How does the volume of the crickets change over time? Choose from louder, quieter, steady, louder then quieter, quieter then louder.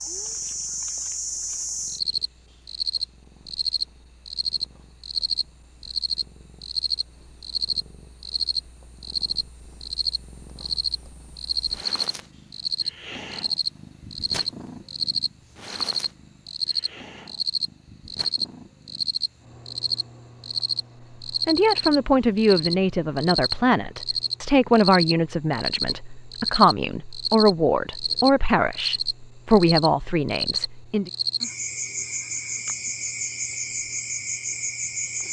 steady.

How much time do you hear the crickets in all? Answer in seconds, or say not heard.
35 s.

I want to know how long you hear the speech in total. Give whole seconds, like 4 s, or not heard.
10 s.